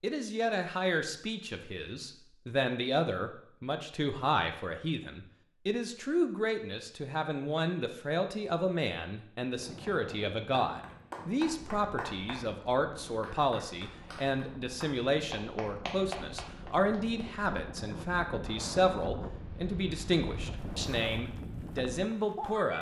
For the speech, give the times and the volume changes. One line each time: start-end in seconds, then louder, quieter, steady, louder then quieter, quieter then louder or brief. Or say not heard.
0.0-22.7 steady.